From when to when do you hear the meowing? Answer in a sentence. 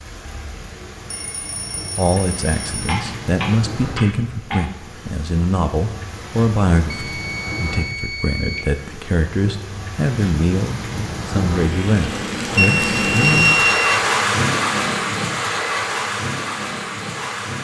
The meowing can't be heard in this clip.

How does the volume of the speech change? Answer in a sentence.
The loudness of the speech stays about the same.